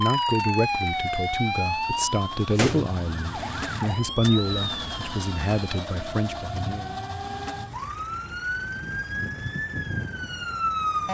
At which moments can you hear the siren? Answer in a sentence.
You can hear the siren from 0.0 to 11.0 s.